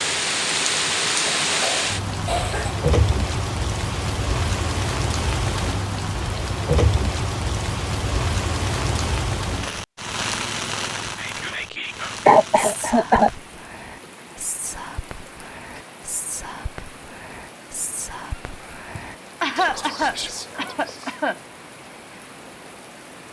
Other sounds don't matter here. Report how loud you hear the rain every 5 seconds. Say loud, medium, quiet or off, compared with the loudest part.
loud, loud, medium, quiet, quiet.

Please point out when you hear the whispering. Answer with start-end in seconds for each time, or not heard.
11.1-21.1.